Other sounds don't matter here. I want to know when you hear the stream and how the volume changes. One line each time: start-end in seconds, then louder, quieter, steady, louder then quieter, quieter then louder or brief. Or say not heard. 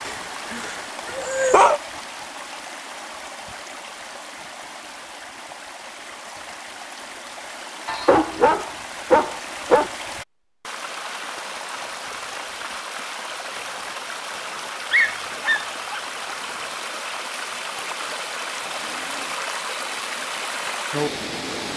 0.0-21.7 louder.